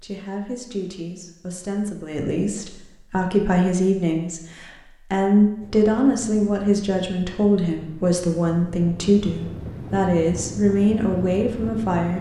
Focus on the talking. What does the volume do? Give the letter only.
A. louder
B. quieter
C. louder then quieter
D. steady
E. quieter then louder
A.